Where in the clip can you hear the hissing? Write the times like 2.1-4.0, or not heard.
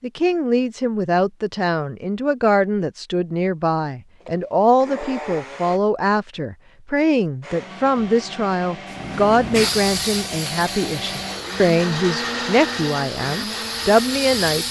8.8-14.6.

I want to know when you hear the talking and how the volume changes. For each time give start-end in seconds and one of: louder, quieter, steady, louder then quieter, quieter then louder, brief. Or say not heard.
0.0-14.6 steady.